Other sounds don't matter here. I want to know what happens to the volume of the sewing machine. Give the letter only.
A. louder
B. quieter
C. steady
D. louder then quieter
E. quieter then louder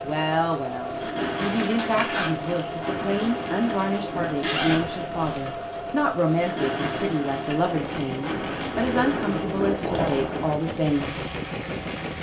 C.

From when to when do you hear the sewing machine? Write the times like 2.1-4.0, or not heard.
0.0-12.1.